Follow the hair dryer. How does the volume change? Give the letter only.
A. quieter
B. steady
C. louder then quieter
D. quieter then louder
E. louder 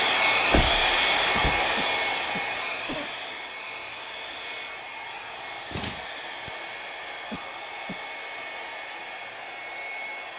A.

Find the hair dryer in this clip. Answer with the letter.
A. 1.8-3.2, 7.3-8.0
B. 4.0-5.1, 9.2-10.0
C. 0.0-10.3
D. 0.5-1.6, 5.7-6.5
C.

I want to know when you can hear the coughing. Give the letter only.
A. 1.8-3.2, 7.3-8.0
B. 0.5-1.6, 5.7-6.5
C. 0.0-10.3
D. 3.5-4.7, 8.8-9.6
A.